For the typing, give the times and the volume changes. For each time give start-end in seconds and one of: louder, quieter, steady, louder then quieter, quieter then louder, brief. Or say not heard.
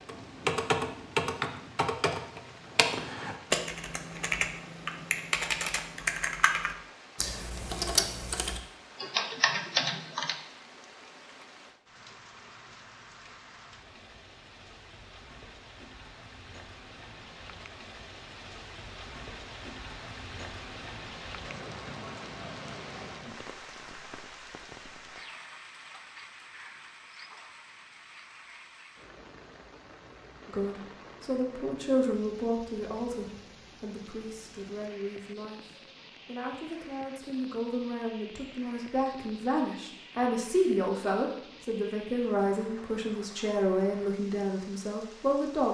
0.1-10.3 steady.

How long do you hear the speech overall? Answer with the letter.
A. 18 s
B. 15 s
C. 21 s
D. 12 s
B.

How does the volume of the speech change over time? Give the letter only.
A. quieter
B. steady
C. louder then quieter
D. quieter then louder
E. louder
D.